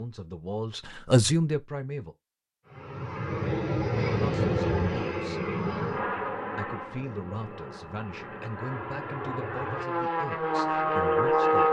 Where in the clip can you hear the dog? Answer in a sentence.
You can't hear the dog here.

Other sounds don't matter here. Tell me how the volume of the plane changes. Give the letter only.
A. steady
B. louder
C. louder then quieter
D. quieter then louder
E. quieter
D.